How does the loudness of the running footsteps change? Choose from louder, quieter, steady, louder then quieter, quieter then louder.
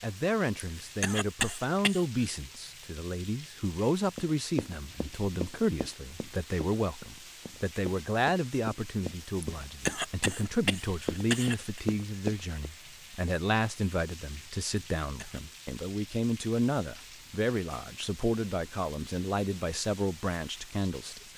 quieter then louder.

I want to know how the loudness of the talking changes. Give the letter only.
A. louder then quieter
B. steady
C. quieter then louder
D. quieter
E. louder
B.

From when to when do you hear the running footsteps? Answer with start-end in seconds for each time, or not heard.
4.2-12.7.